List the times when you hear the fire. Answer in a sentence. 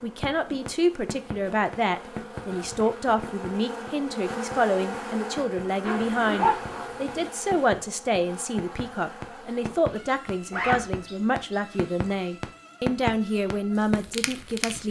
You can hear the fire from 0.0 to 14.8 s.